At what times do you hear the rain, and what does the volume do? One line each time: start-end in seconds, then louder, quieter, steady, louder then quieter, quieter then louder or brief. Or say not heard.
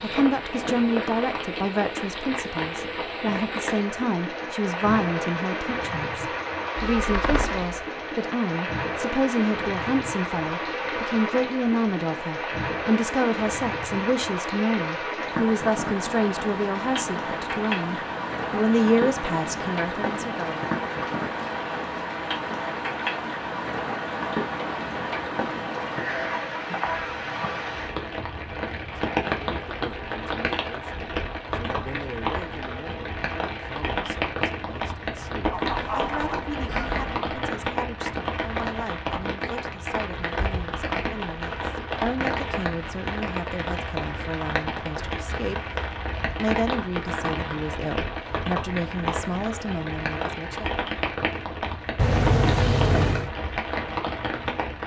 0.0-54.8 steady.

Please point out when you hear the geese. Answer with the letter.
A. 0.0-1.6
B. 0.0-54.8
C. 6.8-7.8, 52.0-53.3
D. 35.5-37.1
D.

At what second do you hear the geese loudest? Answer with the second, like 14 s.
36 s.